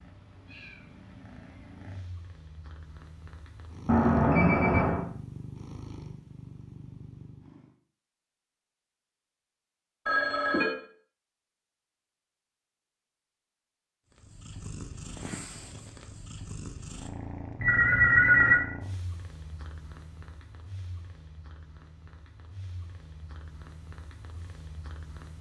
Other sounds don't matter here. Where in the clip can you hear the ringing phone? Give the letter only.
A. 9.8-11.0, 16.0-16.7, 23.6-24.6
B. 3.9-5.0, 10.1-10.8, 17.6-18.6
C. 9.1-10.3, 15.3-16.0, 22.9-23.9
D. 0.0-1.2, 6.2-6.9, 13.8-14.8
B.